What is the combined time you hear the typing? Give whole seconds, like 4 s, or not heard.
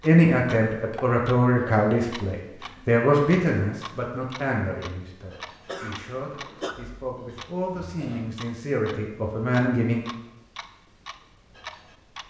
not heard.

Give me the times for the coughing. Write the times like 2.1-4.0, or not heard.
5.7-6.8.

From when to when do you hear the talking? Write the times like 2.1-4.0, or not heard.
0.0-10.1.